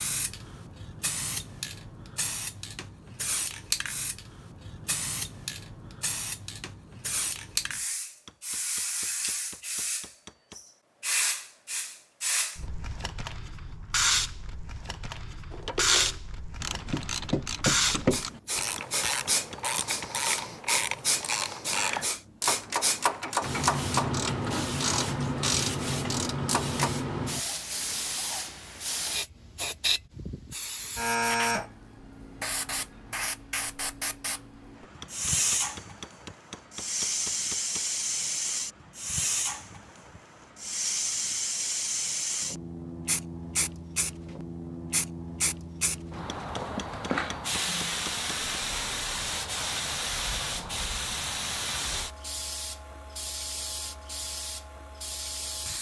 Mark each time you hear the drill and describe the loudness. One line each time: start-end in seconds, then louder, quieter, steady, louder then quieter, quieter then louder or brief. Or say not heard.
not heard.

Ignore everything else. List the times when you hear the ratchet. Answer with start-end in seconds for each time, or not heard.
15.5-26.9.